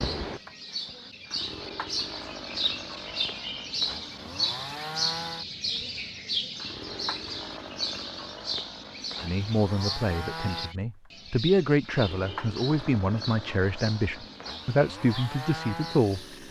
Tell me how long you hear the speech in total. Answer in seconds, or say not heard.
7 s.